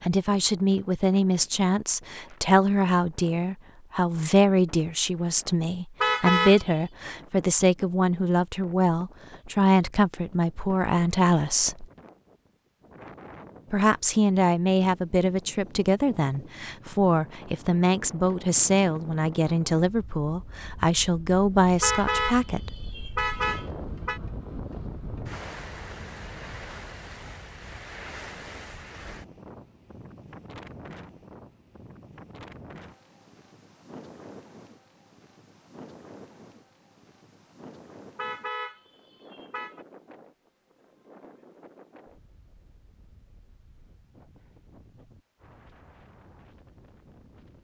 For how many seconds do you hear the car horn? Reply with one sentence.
You can hear the car horn for 5 seconds altogether.